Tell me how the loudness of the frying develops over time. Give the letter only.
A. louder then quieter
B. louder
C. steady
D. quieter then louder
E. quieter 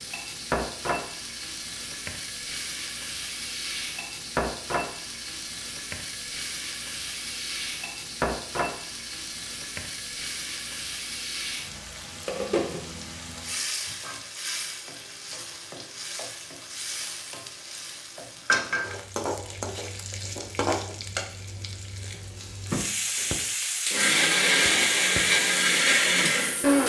C.